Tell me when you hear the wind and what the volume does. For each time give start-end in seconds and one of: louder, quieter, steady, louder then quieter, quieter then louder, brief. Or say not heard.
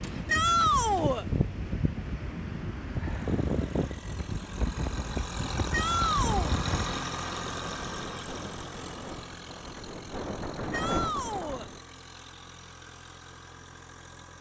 0.0-11.8 quieter then louder.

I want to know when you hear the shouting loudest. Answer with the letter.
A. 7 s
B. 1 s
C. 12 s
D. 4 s
B.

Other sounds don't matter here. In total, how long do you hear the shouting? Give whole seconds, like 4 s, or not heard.
3 s.